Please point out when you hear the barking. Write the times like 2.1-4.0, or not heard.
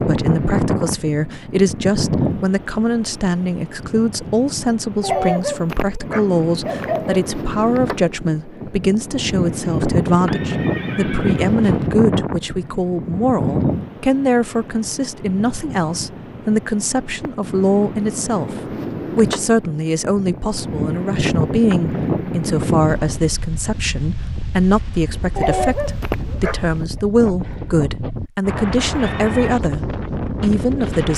5.0-7.2, 25.4-27.0.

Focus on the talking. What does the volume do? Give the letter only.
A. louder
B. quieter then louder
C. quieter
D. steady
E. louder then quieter
D.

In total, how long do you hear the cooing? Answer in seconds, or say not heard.
not heard.